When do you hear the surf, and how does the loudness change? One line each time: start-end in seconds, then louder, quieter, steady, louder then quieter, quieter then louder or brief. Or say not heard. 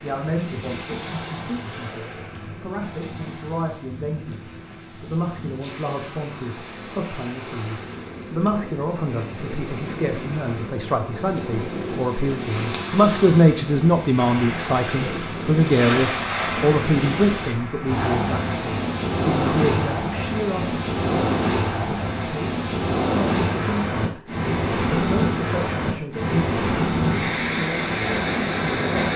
0.0-29.1 louder.